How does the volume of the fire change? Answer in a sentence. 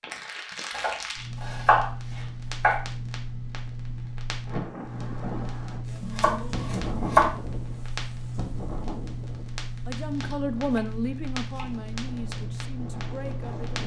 The volume of the fire stays about the same.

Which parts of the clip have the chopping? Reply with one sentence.
The chopping can be heard from 0.7 to 2.8 s, from 6.0 to 7.3 s and from 10.1 to 11.9 s.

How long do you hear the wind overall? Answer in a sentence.
The wind can be heard for 9 seconds in total.